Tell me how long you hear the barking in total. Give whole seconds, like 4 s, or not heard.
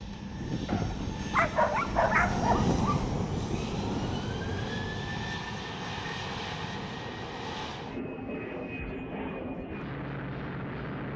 2 s.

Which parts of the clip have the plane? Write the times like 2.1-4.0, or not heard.
0.0-11.1.